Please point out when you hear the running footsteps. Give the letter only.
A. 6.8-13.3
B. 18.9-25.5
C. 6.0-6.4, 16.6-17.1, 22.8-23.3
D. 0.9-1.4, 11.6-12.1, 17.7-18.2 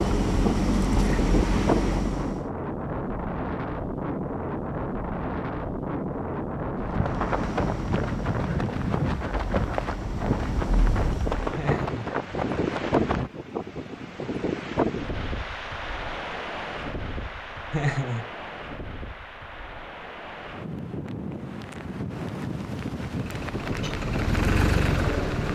A.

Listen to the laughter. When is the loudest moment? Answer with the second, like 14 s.
18 s.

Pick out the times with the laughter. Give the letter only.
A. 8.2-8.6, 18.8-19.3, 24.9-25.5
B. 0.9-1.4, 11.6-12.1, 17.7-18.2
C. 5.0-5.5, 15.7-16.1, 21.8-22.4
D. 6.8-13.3
B.